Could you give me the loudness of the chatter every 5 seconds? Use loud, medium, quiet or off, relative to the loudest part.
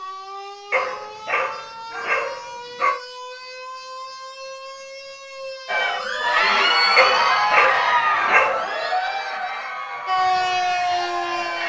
off, loud, medium.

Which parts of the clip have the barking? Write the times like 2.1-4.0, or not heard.
0.7-3.0, 7.0-8.7.